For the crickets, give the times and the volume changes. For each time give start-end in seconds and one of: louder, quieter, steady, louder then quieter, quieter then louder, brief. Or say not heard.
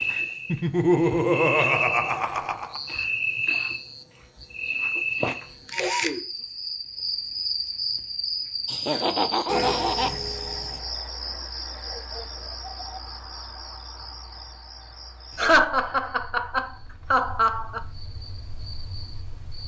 0.0-19.6 quieter.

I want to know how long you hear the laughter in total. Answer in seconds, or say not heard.
6 s.